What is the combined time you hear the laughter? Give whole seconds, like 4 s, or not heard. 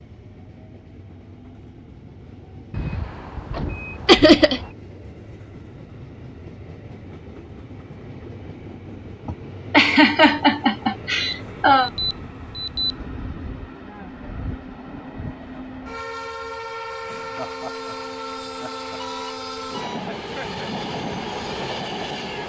5 s.